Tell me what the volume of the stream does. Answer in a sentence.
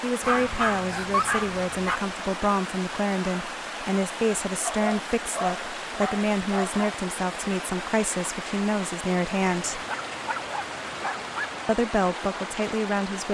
The volume of the stream stays about the same.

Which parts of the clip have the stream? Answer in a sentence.
The stream can be heard from 0.0 to 13.2 s.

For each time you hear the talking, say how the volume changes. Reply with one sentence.
The talking can be heard from 0.0 to 9.8 s, at a steady volume; and briefly from 11.7 to 13.2 s.